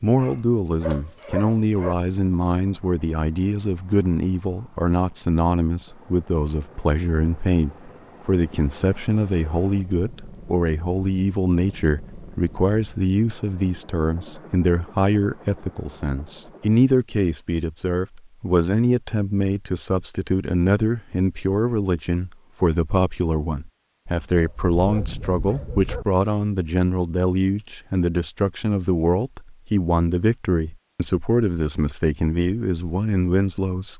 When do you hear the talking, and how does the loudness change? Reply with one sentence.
The talking can be heard from 0.0 to 33.9 s, at a steady volume.